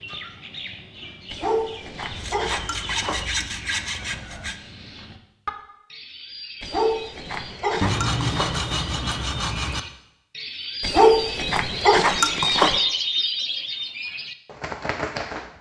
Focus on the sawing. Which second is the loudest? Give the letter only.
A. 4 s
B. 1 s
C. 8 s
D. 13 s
C.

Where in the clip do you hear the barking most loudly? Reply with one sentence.
The loudest moment of the barking is at 11 seconds.